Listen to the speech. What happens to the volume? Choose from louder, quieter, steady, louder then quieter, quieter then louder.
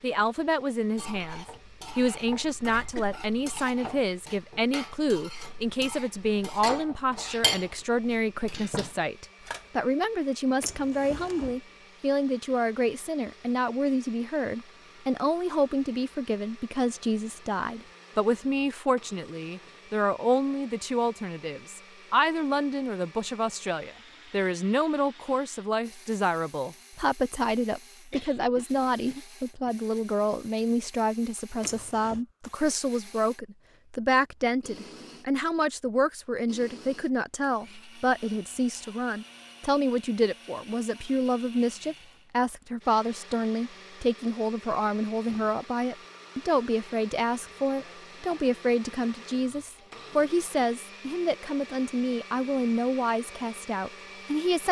steady.